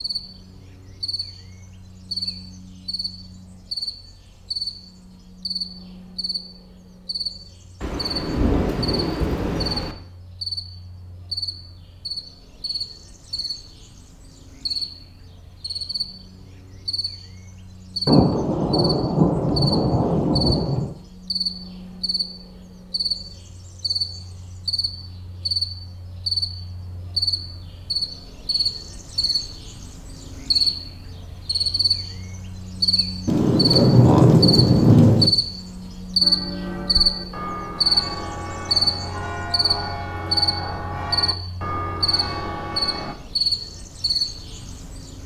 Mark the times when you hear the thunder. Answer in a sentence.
You can hear the thunder from 7.8 to 9.9 s, from 18.1 to 20.9 s and from 33.2 to 35.3 s.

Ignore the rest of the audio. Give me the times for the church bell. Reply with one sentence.
You can hear the church bell from 36.2 to 43.1 s.